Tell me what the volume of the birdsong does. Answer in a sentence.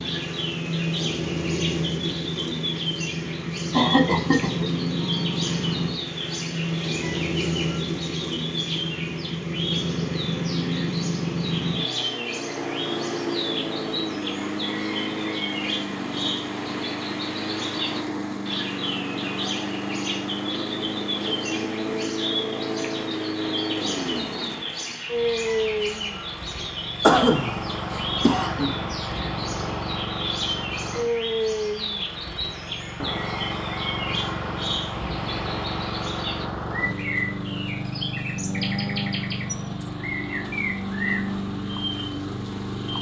The loudness of the birdsong stays about the same.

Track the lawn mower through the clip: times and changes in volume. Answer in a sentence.
You can hear the lawn mower from 0.0 to 42.9 s, at a steady volume.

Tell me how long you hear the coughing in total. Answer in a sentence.
The coughing can be heard for 3 seconds in total.